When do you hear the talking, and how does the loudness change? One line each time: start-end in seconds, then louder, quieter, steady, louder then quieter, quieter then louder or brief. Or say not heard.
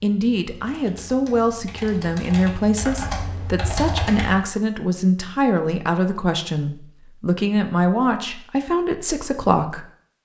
0.0-9.8 steady.